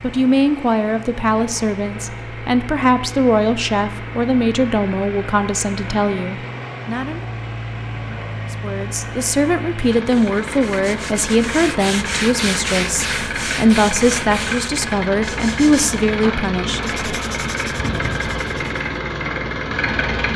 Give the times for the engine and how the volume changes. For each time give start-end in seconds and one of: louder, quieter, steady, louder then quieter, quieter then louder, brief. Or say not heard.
0.0-20.3 louder.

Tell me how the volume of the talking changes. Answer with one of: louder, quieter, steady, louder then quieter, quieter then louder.
steady.